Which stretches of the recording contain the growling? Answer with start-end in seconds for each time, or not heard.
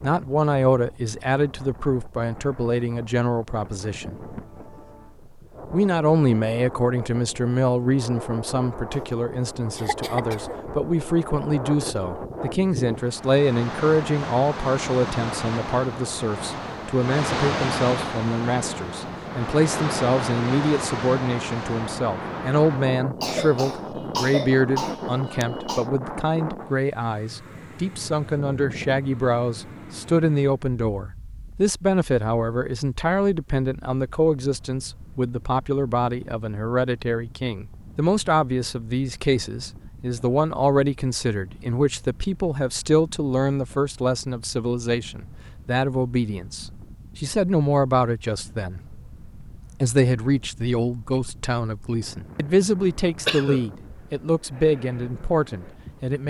not heard.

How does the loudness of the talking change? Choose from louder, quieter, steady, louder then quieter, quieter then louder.
steady.